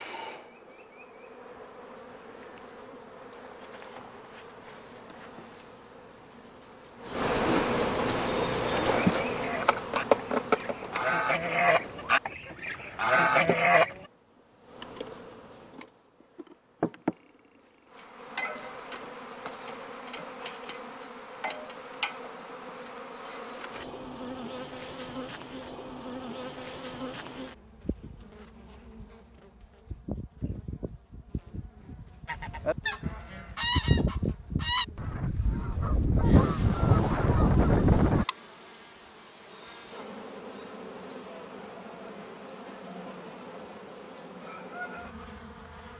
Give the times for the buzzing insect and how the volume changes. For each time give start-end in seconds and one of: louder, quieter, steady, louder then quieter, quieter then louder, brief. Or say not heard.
0.0-45.9 quieter.